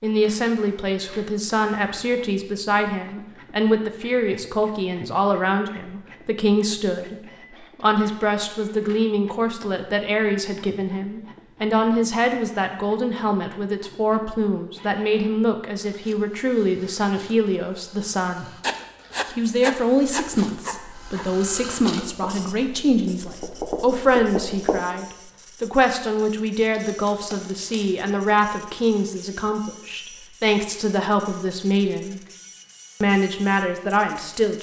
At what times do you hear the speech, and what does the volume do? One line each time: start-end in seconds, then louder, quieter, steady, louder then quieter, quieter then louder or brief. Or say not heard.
0.0-18.6 steady
19.4-32.2 steady
33.0-34.5 brief.